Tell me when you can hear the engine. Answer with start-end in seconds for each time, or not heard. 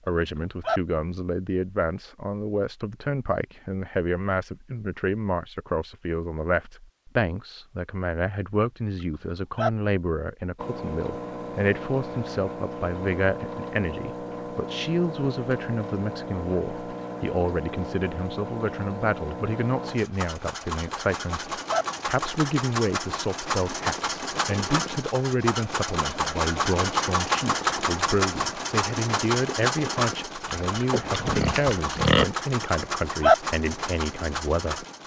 10.6-35.0.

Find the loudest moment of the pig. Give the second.
32 s.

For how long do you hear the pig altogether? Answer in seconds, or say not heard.
2 s.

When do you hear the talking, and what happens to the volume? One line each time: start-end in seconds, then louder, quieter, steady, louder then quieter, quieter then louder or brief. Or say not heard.
0.1-34.9 steady.